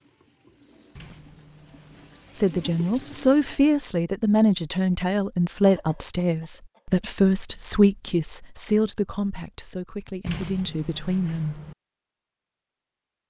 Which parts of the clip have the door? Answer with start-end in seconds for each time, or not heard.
0.9-2.2, 10.2-11.8.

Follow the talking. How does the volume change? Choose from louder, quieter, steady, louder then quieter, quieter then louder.
quieter.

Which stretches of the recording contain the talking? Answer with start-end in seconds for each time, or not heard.
2.4-11.6.